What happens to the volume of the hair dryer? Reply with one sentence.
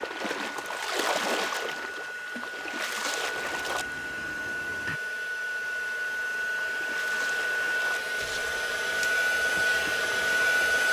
The loudness of the hair dryer goes up.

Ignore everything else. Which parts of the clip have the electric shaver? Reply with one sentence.
You can't hear the electric shaver here.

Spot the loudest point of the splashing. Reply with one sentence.
The volume of the splashing peaks at 1 second.